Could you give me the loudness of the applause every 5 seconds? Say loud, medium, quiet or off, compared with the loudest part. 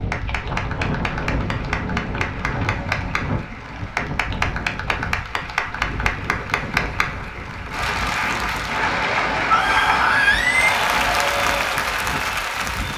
medium, loud, loud.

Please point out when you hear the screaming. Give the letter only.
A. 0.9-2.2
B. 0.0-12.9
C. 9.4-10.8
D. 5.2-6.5
C.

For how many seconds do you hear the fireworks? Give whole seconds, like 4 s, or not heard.
not heard.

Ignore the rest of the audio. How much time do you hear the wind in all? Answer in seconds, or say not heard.
13 s.